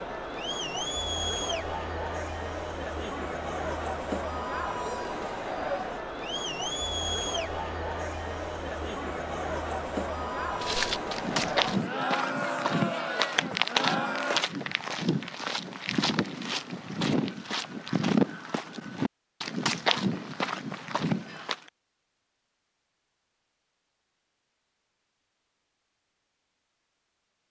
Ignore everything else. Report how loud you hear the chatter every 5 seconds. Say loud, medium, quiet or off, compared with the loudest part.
loud, loud, loud, off, off, off.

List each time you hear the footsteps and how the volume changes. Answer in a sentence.
The footsteps can be heard from 10.6 to 21.7 s, at a steady volume.